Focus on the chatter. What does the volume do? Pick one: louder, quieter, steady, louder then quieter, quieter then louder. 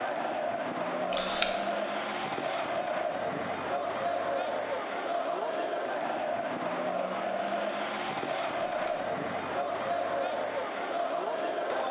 steady.